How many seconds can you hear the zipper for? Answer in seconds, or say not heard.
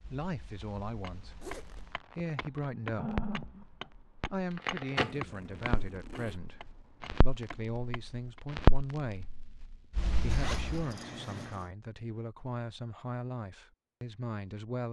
3 s.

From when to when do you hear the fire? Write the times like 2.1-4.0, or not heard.
0.0-10.8.